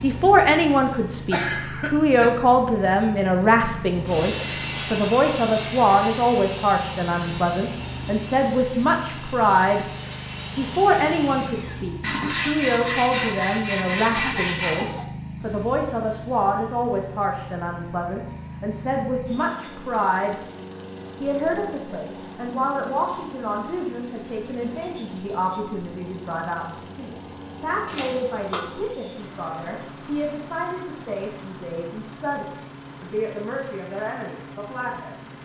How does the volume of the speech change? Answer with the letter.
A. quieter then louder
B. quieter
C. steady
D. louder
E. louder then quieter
B.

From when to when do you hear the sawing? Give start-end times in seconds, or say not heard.
4.0-14.8.